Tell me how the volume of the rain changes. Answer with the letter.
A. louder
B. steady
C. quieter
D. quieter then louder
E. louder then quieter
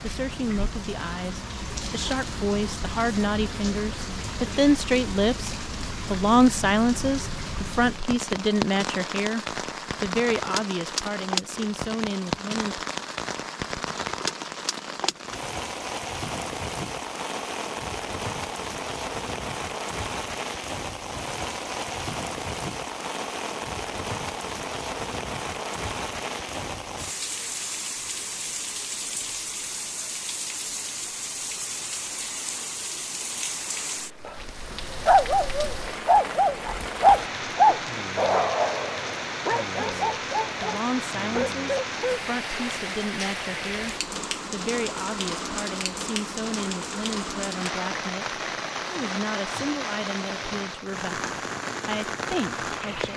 B.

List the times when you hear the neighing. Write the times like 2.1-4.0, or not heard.
not heard.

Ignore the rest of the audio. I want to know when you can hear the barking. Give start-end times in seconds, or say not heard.
35.0-42.7.